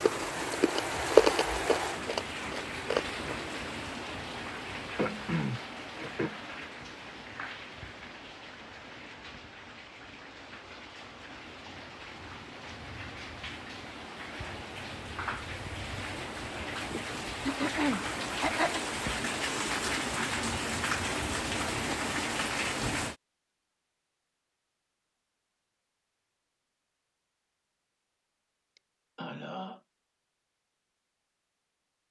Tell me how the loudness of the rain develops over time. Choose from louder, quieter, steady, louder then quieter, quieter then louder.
quieter then louder.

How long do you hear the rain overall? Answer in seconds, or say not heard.
23 s.